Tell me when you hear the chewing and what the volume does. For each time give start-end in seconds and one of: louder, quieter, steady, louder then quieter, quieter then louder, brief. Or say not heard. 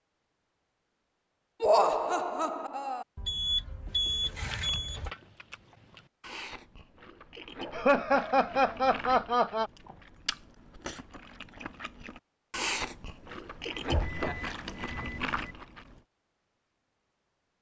4.3-16.0 louder.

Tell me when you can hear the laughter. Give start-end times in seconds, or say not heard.
1.6-3.0, 7.7-9.7, 14.1-14.6.